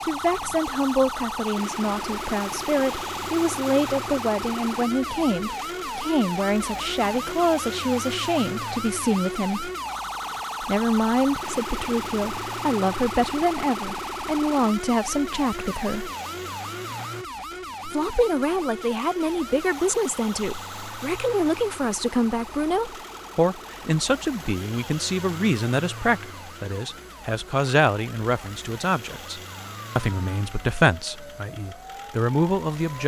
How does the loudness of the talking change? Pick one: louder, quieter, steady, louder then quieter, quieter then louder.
steady.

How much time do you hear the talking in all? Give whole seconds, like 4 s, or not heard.
30 s.